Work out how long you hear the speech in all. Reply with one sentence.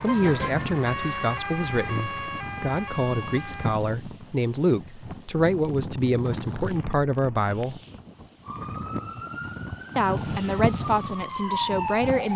You can hear the speech for 10 seconds altogether.